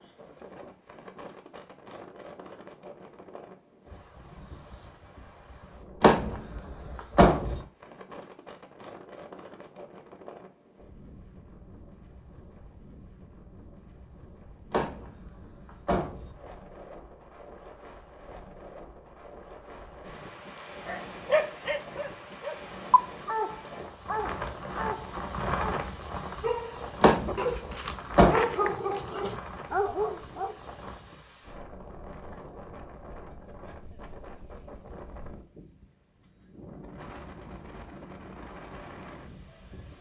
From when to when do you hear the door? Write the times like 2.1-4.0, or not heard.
6.0-7.6, 14.7-16.3, 27.0-28.4.